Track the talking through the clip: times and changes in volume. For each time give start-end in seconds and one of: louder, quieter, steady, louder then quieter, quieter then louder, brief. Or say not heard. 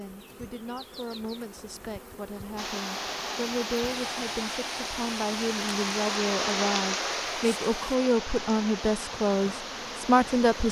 0.0-10.6 louder.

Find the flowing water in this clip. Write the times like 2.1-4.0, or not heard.
2.5-10.6.